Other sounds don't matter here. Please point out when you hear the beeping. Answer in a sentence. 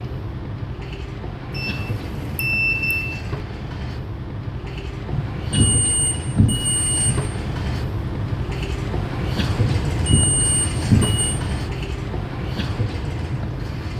The beeping can be heard from 1.5 to 3.0 s, from 5.1 to 7.1 s and from 9.6 to 11.3 s.